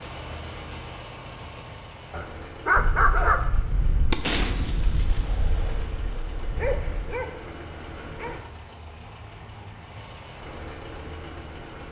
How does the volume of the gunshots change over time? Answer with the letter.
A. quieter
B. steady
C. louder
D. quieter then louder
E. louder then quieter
E.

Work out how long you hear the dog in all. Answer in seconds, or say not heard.
4 s.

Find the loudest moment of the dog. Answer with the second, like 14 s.
3 s.